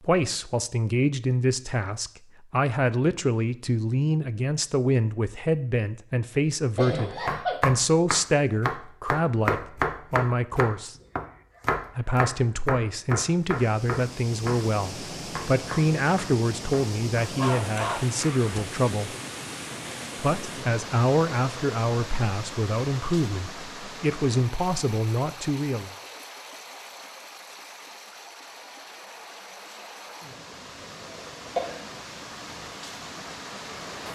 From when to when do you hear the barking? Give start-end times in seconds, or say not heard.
17.2-18.8.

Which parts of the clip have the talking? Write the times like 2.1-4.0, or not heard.
0.0-10.9, 11.9-19.1, 20.1-25.9.